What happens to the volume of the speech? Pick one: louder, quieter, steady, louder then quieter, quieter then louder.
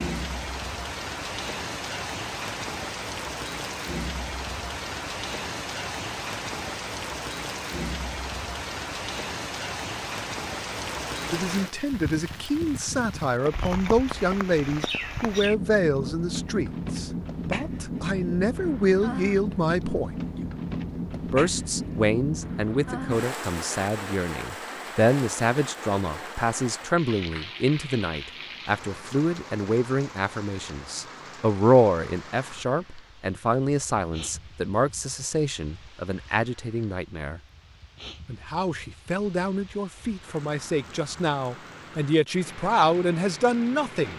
steady.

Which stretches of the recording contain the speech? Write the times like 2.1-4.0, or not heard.
11.3-20.1, 21.1-37.4, 38.2-44.1.